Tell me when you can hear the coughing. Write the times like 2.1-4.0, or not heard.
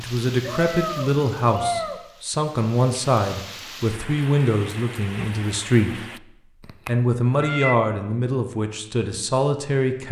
not heard.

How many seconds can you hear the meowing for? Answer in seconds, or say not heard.
3 s.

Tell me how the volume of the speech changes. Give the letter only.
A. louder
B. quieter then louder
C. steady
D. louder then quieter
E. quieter
C.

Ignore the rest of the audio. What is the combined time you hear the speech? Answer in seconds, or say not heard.
9 s.